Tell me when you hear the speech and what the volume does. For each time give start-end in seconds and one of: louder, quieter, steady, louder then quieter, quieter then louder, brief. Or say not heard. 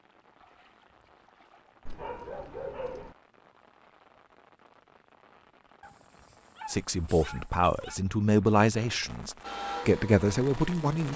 6.7-11.1 steady.